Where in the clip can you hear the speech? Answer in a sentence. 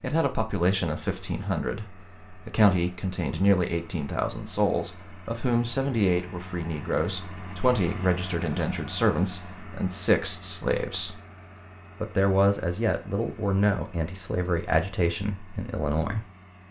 The speech can be heard from 0.0 to 11.2 s and from 12.0 to 16.2 s.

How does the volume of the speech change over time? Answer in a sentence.
The loudness of the speech stays about the same.